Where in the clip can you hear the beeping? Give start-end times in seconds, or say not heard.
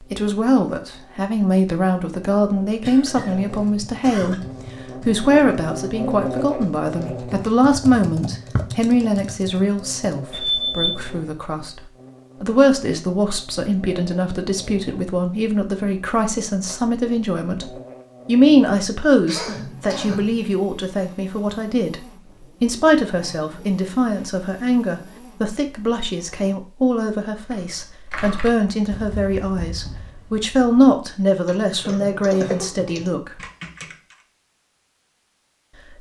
10.3-11.2.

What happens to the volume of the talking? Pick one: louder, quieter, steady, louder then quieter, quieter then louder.
steady.